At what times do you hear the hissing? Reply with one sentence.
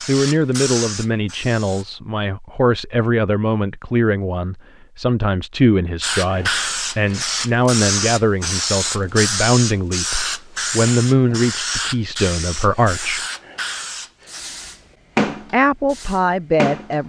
The hissing can be heard from 0.0 to 1.9 s and from 6.0 to 17.0 s.